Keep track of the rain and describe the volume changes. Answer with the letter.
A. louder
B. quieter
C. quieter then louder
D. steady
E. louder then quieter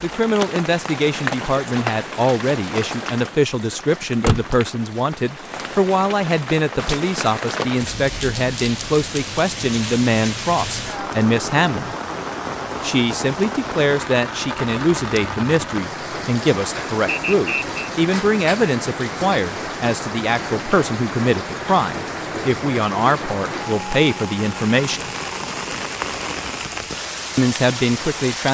D.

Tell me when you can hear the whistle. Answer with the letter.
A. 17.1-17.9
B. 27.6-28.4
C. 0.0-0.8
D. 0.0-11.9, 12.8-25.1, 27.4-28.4
A.